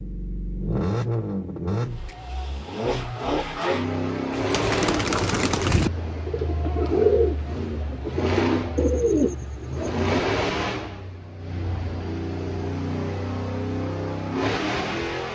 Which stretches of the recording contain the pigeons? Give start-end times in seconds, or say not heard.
4.3-9.9.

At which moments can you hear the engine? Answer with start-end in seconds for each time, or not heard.
0.0-15.3.